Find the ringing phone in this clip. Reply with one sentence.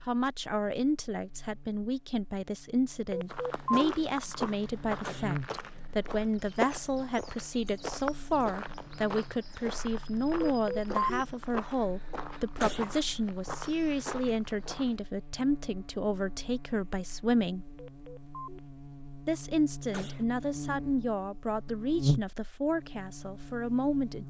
The ringing phone can be heard from 3.1 to 4.0 s, from 10.4 to 11.0 s and from 17.8 to 18.6 s.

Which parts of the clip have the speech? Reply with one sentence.
The speech can be heard from 0.1 to 17.6 s and from 19.2 to 24.2 s.